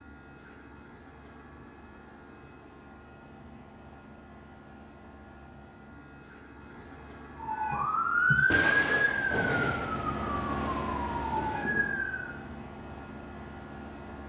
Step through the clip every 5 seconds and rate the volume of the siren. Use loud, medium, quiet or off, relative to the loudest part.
off, loud, medium.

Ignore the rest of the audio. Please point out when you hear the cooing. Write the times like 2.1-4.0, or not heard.
not heard.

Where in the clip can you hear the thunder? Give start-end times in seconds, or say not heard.
8.5-11.9.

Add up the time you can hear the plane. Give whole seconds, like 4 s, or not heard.
14 s.